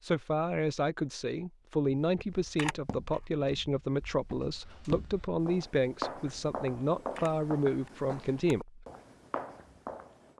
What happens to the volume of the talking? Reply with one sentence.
The volume of the talking stays about the same.